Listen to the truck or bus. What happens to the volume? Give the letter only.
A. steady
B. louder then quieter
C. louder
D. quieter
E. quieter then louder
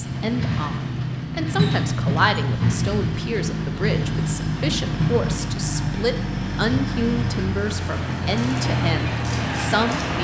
A.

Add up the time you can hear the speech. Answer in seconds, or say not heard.
10 s.